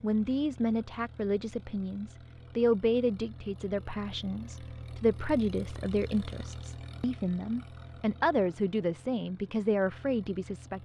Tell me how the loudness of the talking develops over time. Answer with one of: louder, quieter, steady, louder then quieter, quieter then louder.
steady.